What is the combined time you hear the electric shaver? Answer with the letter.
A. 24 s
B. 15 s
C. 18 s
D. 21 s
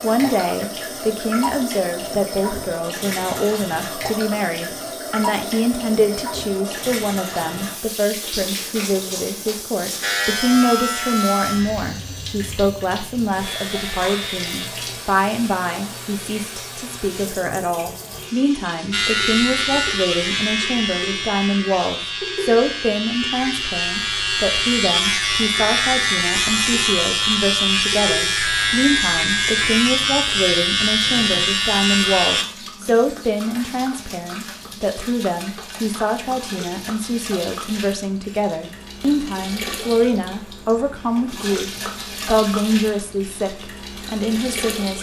C.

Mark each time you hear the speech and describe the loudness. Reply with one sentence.
The speech can be heard from 0.0 to 44.9 s, at a steady volume.